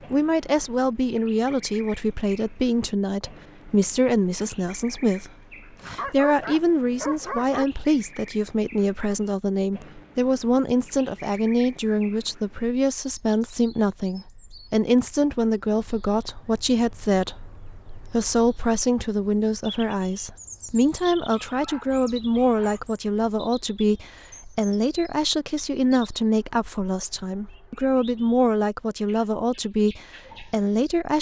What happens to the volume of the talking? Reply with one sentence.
The volume of the talking stays about the same.